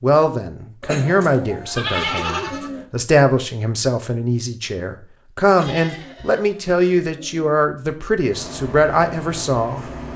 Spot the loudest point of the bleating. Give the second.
2 s.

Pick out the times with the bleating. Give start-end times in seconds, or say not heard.
1.1-2.7, 5.6-6.6.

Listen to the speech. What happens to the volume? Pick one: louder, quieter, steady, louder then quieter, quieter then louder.
steady.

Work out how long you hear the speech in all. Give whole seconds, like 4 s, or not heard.
10 s.